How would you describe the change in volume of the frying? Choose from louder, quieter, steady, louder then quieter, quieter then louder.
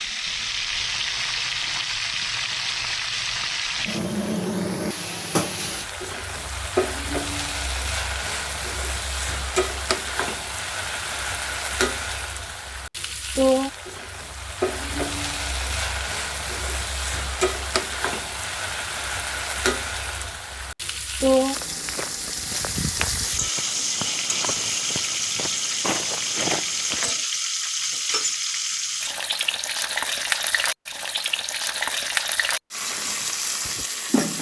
steady.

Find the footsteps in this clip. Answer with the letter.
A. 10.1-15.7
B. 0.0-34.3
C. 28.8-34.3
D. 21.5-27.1
D.